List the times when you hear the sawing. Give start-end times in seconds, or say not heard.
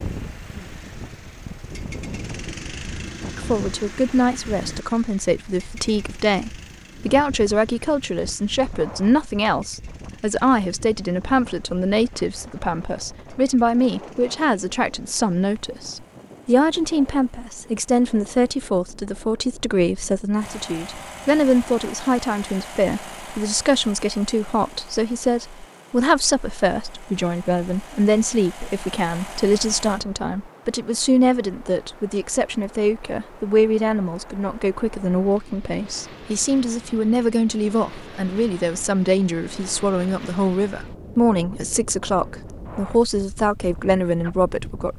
not heard.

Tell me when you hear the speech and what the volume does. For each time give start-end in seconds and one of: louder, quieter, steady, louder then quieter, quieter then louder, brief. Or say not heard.
3.4-44.9 steady.